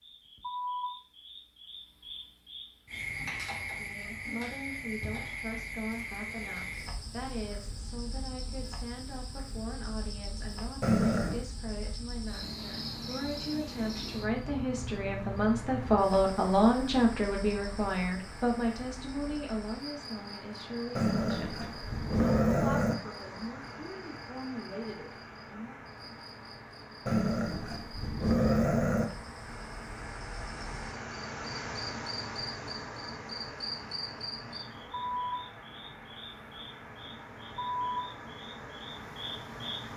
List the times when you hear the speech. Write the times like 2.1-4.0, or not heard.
3.7-25.8.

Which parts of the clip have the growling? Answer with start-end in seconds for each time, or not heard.
10.8-11.4, 20.9-22.9, 27.1-29.1.